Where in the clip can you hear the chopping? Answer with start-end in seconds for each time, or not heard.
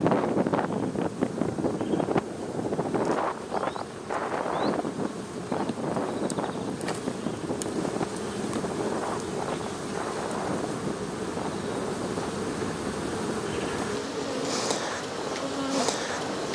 not heard.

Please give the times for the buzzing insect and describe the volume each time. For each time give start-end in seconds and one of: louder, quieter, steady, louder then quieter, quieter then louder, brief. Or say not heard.
0.0-16.4 louder.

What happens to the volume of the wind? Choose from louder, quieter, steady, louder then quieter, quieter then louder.
quieter.